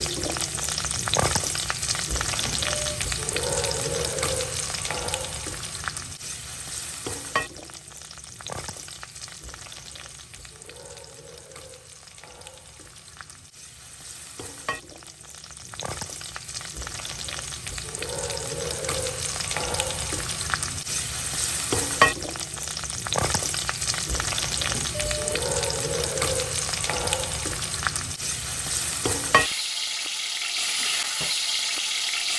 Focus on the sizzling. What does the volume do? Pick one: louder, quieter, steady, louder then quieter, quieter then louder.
quieter then louder.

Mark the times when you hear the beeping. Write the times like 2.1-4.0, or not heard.
2.4-3.0, 24.6-25.6.